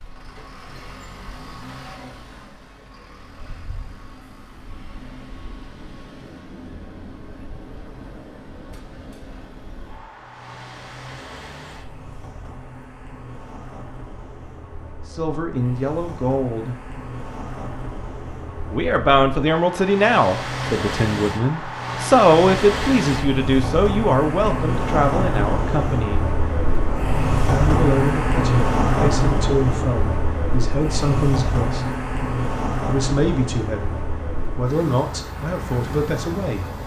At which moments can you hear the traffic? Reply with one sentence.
You can hear the traffic from 0.0 to 36.8 s.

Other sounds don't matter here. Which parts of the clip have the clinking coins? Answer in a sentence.
The clinking coins can't be heard in this clip.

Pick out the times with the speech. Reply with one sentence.
You can hear the speech from 15.1 to 16.8 s, from 18.7 to 26.2 s, from 27.4 to 31.9 s and from 32.9 to 36.6 s.